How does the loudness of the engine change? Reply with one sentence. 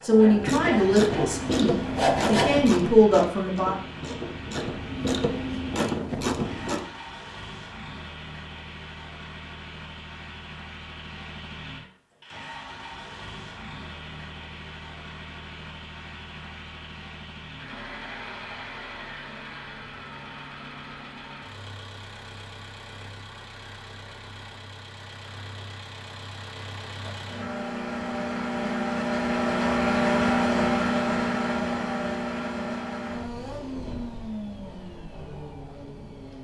The volume of the engine goes up.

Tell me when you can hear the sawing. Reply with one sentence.
You can hear the sawing from 0.0 to 2.6 s.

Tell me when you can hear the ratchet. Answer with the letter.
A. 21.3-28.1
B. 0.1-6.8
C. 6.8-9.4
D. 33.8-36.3
B.